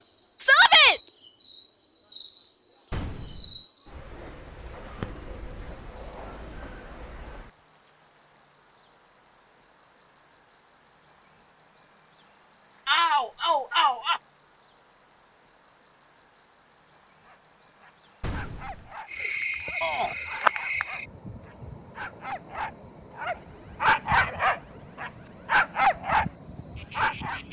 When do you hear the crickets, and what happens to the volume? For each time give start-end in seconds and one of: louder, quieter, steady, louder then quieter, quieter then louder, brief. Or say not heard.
0.0-27.4 steady.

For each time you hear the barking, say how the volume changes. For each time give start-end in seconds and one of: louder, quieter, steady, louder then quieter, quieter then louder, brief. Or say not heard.
17.2-26.2 louder
26.9-27.4 brief.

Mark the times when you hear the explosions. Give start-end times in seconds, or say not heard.
2.9-3.6, 18.2-18.9.